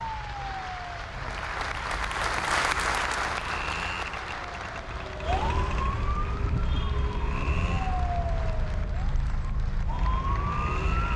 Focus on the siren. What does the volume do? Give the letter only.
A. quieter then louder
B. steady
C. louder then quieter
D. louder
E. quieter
D.